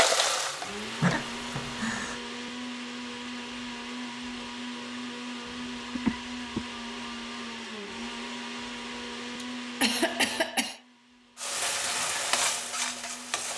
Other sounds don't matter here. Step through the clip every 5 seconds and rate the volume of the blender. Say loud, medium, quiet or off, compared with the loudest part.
loud, loud, medium.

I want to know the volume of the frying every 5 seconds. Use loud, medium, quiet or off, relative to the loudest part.
loud, off, loud.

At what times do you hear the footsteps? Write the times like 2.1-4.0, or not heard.
not heard.